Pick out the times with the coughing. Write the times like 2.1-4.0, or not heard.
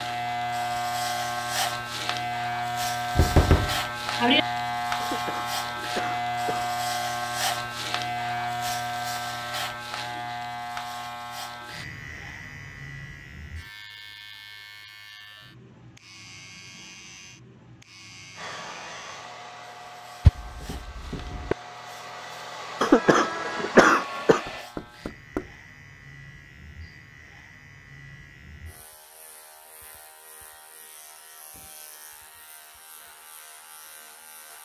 5.0-6.8, 22.8-24.4.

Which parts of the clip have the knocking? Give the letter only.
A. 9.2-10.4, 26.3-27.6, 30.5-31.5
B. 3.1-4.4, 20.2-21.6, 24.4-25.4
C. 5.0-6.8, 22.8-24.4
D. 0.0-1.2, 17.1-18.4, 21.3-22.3
B.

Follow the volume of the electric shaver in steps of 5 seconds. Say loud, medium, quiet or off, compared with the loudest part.
loud, loud, medium, quiet, quiet, quiet, quiet.